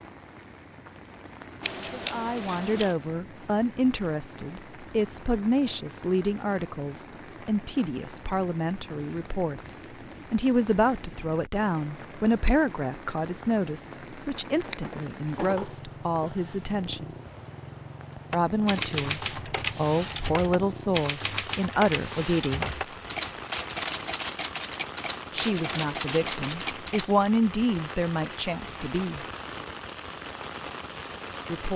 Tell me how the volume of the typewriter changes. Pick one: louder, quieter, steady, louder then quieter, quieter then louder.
steady.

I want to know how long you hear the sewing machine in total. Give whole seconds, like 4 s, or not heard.
not heard.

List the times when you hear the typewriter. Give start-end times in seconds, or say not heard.
18.3-27.1.